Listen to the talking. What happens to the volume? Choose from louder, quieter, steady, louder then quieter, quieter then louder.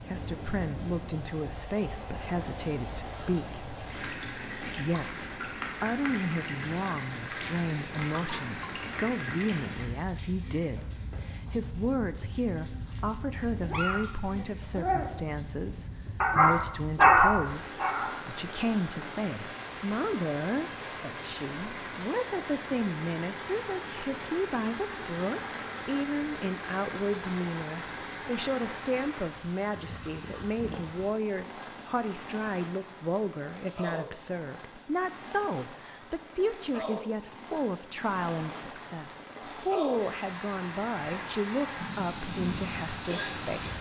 steady.